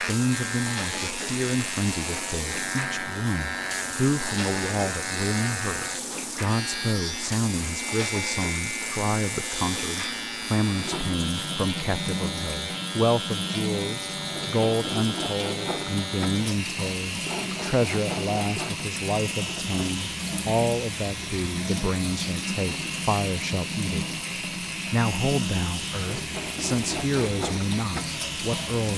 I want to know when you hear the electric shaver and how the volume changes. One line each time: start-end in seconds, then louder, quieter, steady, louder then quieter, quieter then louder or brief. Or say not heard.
0.0-28.9 steady.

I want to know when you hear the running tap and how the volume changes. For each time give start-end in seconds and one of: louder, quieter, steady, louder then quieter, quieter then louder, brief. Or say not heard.
0.0-28.9 steady.